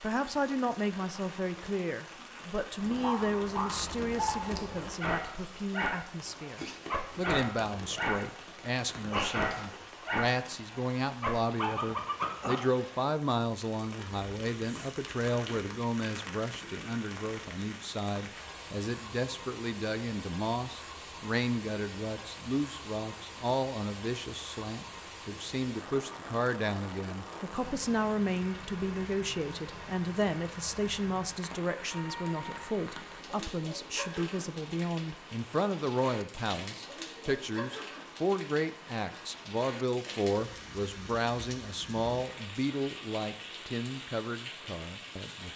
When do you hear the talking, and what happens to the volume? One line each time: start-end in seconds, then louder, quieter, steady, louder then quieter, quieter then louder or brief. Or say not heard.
0.0-45.5 steady.